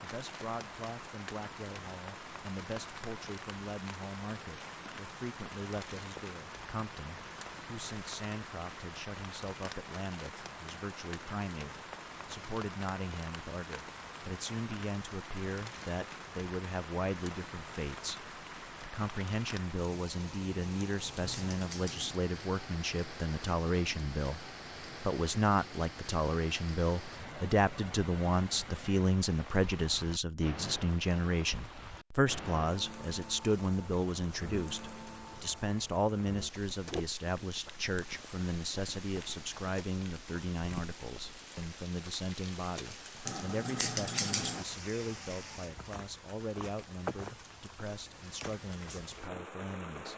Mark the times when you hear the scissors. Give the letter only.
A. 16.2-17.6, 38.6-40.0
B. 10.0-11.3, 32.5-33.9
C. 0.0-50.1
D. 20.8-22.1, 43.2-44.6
D.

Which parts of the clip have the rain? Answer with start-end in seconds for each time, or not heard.
0.0-50.1.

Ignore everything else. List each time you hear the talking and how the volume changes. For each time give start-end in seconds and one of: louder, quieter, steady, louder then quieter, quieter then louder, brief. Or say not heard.
0.0-50.1 louder then quieter.